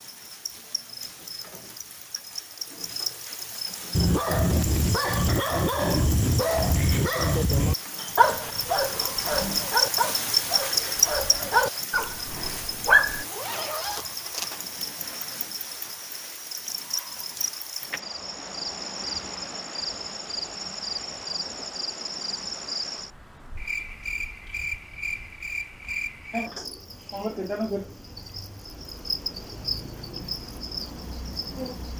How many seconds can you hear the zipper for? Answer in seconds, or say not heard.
2 s.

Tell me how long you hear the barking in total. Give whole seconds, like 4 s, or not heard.
9 s.